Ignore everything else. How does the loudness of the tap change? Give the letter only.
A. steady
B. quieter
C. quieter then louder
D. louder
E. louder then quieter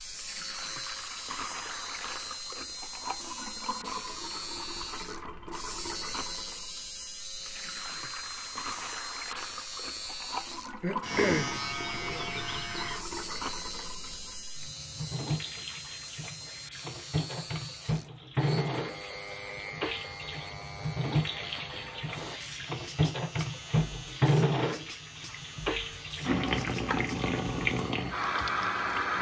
D.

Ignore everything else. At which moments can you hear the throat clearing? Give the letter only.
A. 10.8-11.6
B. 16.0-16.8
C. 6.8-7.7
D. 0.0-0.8
A.